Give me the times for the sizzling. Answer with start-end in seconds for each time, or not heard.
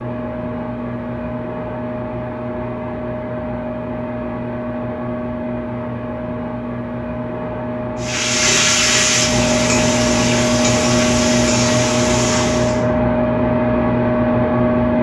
8.0-12.8.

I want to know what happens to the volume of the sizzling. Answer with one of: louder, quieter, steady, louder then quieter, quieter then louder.
quieter.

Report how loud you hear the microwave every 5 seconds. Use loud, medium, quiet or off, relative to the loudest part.
medium, medium, loud.